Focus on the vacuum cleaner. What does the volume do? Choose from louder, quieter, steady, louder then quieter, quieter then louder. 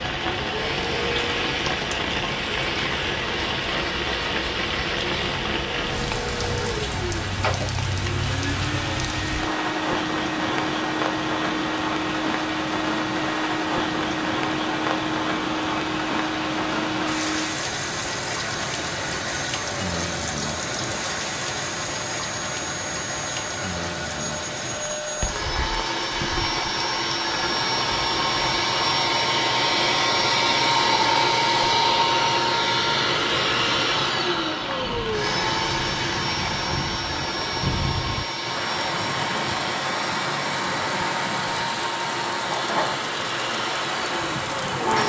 louder then quieter.